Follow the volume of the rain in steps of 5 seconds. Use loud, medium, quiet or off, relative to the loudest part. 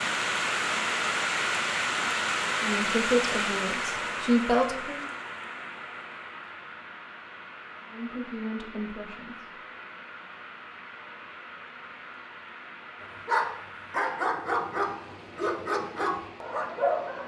loud, quiet, quiet, quiet.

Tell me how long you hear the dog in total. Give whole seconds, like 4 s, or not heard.
4 s.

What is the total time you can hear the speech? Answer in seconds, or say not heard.
4 s.